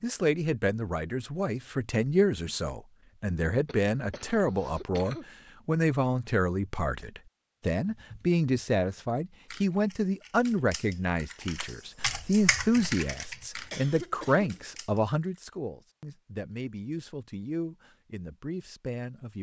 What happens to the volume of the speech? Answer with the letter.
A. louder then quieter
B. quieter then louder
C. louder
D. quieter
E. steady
D.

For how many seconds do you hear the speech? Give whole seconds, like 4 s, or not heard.
19 s.